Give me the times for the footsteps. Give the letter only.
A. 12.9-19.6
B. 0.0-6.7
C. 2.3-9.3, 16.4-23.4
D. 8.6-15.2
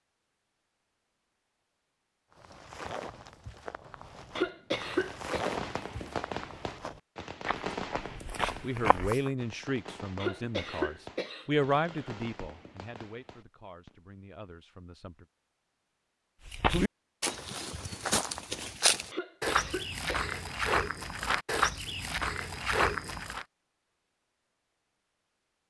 C.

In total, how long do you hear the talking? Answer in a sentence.
The talking can be heard for 7 seconds in total.